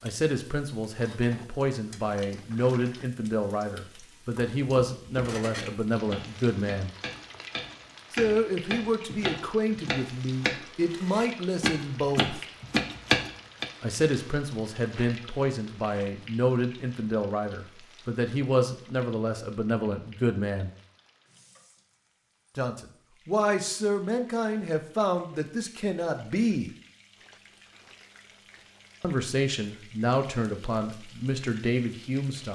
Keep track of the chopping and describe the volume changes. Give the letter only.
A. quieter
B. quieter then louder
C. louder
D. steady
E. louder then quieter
C.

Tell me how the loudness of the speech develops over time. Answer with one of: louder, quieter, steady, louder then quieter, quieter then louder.
steady.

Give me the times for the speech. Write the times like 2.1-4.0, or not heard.
0.0-6.9, 8.1-12.4, 13.8-20.7, 22.6-26.7, 29.0-32.5.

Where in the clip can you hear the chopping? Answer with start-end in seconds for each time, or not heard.
4.2-13.7.